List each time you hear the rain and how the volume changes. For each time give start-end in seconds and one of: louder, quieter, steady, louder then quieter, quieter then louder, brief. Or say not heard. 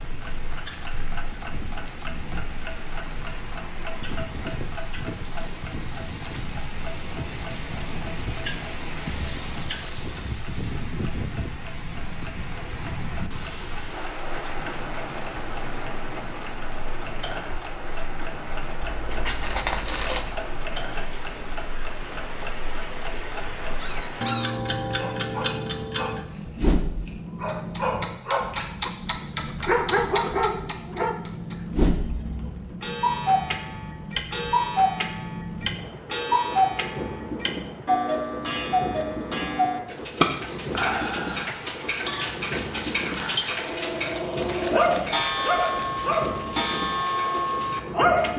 0.0-48.3 steady.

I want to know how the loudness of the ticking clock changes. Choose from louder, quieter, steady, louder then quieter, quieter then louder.
louder.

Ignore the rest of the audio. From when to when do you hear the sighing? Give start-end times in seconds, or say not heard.
not heard.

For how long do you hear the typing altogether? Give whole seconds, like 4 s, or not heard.
not heard.